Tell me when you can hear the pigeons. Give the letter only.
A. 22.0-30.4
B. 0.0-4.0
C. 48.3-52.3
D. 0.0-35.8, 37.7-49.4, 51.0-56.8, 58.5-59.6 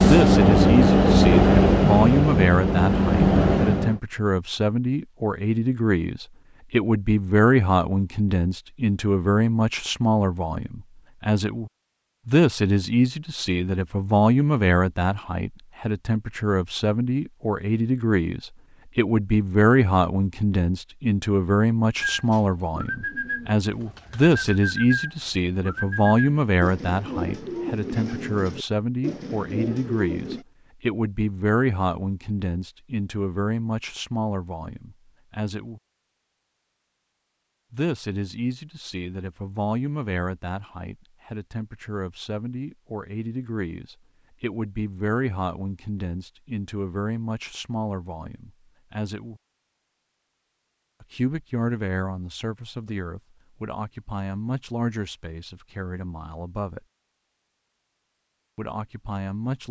A.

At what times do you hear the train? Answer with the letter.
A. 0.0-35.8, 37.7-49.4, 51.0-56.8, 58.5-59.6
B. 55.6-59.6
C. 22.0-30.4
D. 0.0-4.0
D.